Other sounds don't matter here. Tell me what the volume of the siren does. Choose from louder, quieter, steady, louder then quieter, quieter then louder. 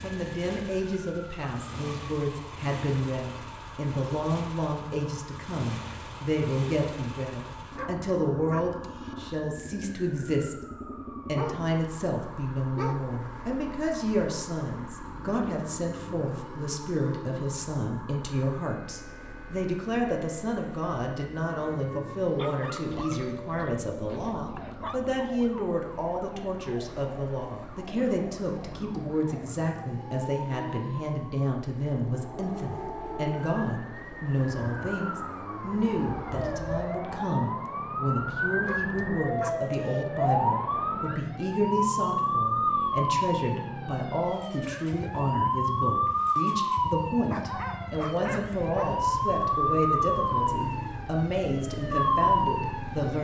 louder.